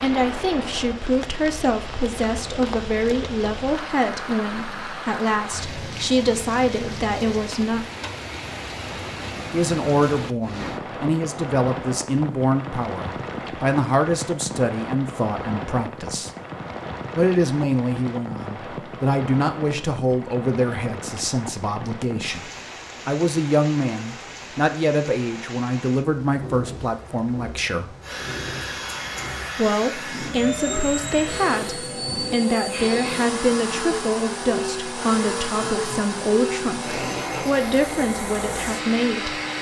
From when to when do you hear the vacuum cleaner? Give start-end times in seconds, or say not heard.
28.0-39.5.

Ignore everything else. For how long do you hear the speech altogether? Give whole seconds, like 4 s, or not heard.
35 s.